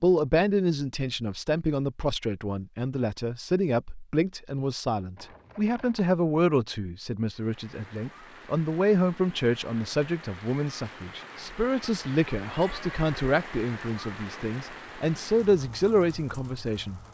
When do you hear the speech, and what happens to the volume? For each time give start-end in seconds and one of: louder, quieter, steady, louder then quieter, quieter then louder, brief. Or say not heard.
0.0-17.0 steady.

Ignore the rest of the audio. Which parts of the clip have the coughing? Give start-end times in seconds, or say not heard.
not heard.